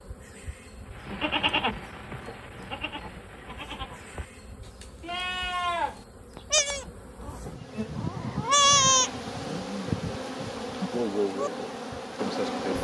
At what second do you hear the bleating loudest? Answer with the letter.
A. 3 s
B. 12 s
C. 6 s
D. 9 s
D.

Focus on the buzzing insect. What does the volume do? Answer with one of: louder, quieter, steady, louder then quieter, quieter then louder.
louder.